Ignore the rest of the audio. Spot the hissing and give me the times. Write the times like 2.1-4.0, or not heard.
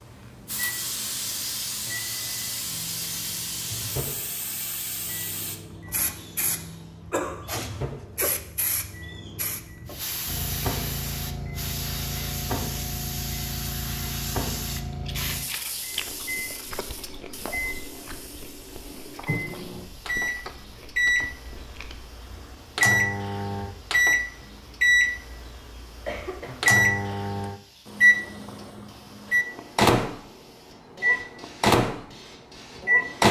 0.0-33.2.